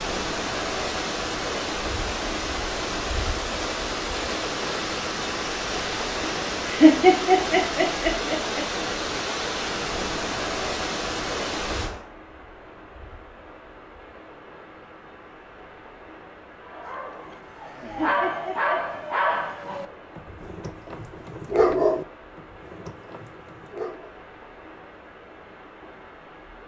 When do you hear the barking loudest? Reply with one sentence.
The volume of the barking peaks at 22 seconds.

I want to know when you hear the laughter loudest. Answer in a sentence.
The volume of the laughter peaks at 7 seconds.